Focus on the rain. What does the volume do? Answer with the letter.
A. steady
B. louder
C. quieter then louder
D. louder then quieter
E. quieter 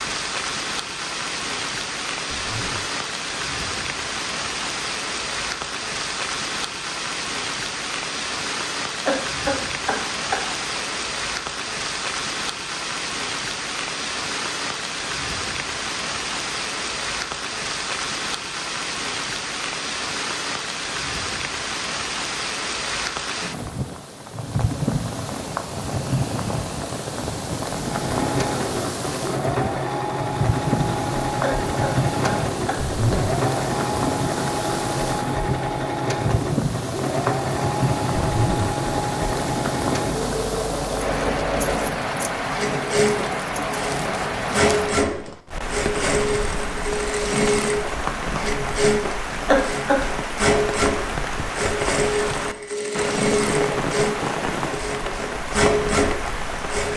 A.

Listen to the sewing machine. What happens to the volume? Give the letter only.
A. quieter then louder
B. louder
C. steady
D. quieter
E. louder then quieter
C.